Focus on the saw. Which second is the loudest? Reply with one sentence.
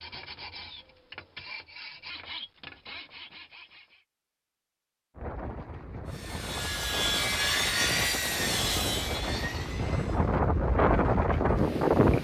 The volume of the saw peaks at 8 seconds.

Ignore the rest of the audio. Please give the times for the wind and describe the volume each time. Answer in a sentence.
The wind can be heard from 5.2 to 12.1 s, getting louder.